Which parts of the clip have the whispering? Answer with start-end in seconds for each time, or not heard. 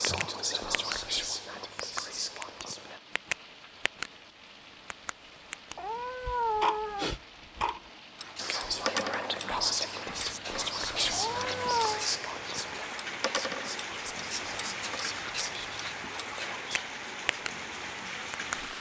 0.0-3.0, 8.3-16.9.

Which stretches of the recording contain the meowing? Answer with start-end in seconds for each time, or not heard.
5.8-7.2, 11.1-12.1.